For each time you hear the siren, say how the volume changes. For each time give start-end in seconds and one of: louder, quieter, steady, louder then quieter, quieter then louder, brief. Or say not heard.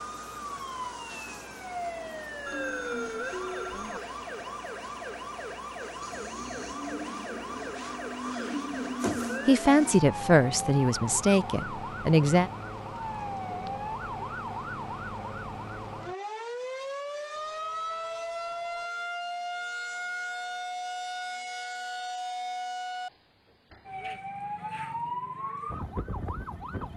0.0-26.9 steady.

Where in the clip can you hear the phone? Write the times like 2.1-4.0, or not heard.
2.5-4.0, 17.4-18.9.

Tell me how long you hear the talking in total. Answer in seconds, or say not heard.
3 s.